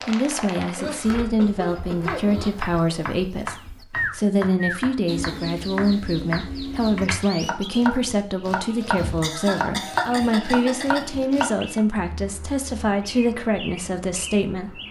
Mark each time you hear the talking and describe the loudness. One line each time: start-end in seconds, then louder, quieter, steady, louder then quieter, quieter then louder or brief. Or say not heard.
0.1-14.8 steady.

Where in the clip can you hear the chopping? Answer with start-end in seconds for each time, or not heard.
1.0-11.8.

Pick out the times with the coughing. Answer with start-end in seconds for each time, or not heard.
0.6-2.5, 9.2-11.0.